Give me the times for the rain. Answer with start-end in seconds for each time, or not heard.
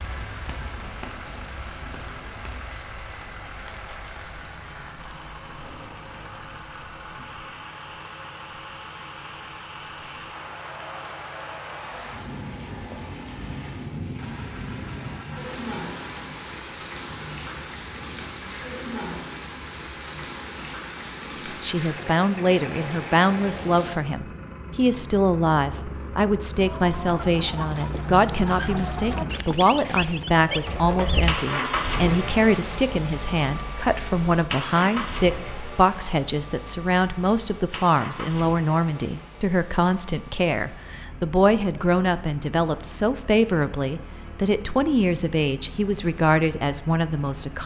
0.0-23.9.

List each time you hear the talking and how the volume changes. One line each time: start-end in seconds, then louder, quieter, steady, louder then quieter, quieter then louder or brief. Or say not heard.
21.6-47.6 steady.